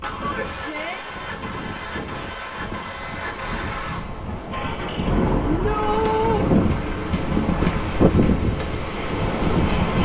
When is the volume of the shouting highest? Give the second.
6 s.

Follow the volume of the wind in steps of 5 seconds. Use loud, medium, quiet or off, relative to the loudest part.
quiet, loud.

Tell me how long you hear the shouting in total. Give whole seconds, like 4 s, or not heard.
2 s.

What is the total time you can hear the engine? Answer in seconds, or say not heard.
10 s.